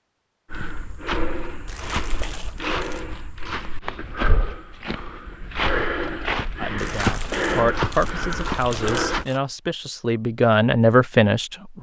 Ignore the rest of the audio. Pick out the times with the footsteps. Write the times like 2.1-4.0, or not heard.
0.5-9.2.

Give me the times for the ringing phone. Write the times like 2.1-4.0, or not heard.
not heard.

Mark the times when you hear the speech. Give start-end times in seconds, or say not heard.
6.6-11.7.